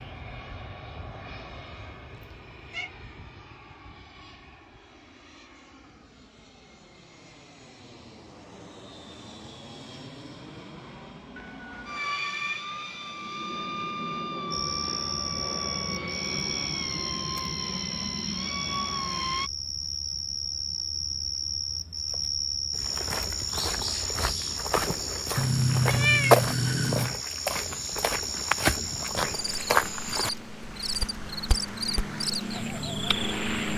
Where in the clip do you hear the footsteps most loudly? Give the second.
26 s.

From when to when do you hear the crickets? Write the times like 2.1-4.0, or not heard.
14.5-33.7.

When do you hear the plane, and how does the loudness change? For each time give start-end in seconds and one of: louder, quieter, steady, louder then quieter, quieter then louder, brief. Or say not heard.
0.0-19.5 quieter then louder
28.6-33.7 louder.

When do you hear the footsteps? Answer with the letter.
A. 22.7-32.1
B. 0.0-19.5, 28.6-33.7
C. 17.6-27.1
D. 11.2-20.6
A.